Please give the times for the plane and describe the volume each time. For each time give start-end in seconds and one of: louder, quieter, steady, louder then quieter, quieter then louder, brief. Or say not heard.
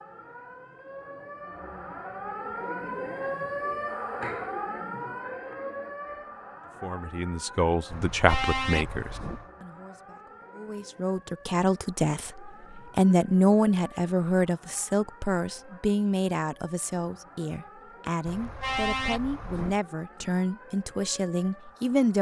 not heard.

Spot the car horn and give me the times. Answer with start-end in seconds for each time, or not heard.
7.9-9.5, 18.2-19.8.